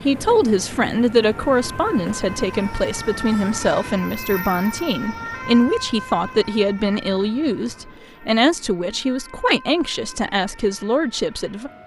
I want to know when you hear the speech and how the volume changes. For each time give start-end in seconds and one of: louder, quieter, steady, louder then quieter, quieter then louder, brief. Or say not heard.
0.0-11.7 steady.